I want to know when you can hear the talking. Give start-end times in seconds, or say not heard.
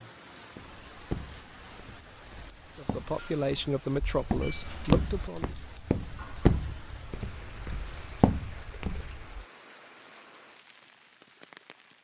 2.8-5.5.